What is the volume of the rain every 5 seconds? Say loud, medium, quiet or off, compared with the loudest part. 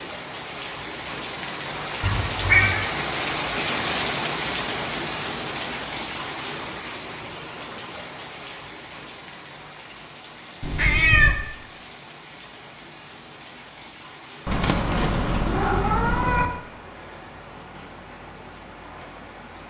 loud, medium, quiet, quiet.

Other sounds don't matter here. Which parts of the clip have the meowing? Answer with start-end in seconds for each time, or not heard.
2.0-2.9, 10.6-11.3, 14.4-16.4.